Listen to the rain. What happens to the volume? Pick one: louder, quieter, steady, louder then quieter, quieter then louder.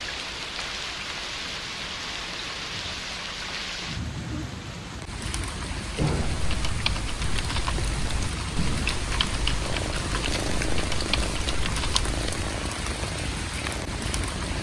steady.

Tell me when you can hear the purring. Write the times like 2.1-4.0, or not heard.
9.6-14.5.